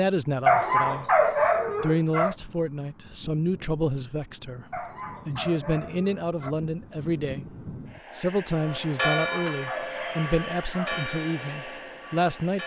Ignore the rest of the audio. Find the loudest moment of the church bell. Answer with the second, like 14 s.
9 s.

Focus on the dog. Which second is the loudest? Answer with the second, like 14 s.
1 s.